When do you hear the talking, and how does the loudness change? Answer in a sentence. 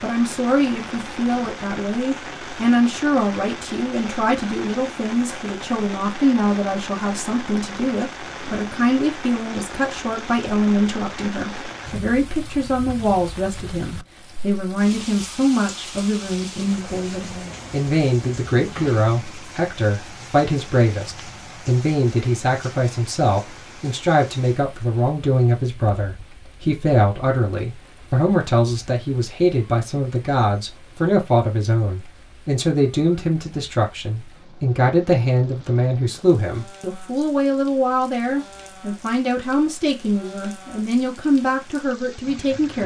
You can hear the talking from 0.0 to 42.8 s, at a steady volume.